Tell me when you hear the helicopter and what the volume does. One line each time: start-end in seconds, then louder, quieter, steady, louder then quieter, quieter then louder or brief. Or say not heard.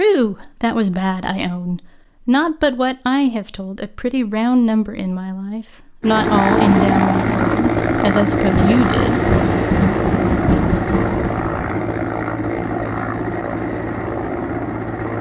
6.0-15.1 quieter.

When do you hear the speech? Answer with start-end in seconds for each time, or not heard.
0.0-9.2.